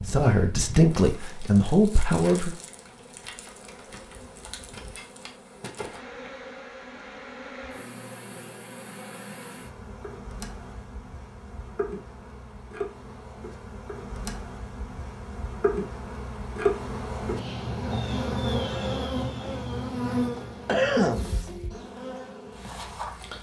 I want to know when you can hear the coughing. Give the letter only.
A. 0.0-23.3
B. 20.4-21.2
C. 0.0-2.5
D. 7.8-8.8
B.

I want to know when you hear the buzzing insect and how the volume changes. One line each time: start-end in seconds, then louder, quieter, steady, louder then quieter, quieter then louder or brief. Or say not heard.
0.0-23.3 louder.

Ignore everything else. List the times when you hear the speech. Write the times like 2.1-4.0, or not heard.
0.0-2.5.